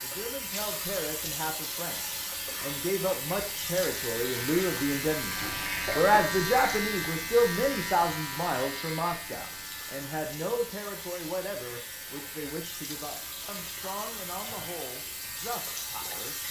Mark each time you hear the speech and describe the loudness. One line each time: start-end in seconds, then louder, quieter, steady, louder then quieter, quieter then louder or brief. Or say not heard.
0.0-16.4 louder then quieter.